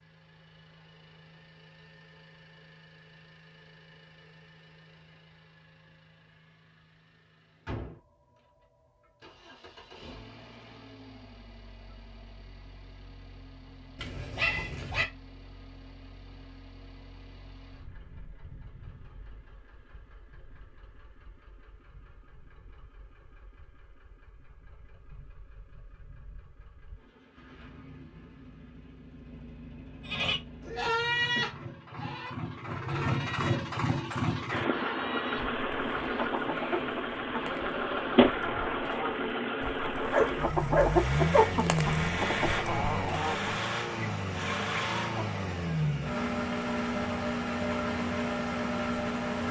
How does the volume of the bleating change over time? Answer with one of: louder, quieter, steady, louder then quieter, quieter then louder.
quieter.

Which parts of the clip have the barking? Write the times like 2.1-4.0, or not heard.
13.9-15.1, 40.1-41.5.